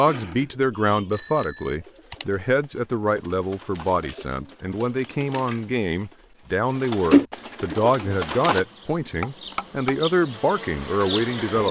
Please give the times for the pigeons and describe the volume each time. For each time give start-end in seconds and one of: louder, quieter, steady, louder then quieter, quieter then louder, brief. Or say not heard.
0.1-8.7 louder.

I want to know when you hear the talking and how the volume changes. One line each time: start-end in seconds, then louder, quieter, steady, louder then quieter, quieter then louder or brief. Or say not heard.
0.0-11.6 steady.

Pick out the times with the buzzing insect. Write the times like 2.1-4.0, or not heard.
7.7-11.6.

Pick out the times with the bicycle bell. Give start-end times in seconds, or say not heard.
1.1-1.8, 9.2-10.1.